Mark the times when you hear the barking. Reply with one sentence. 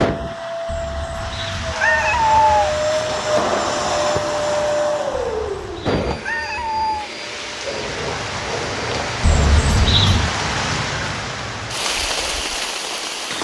You can't hear the barking here.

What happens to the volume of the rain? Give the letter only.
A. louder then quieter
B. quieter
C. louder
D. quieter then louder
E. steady
C.